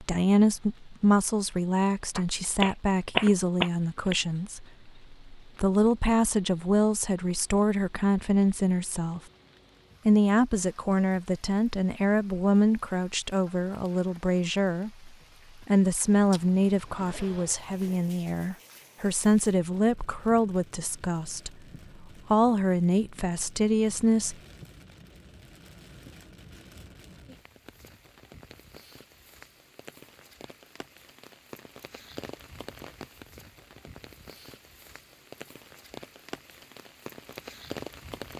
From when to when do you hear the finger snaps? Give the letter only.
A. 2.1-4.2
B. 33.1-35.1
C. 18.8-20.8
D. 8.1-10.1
A.